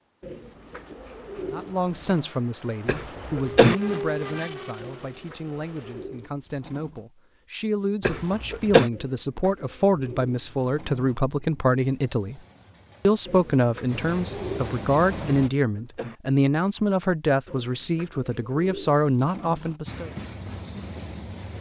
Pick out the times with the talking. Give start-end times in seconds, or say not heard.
1.5-12.4, 13.0-20.1.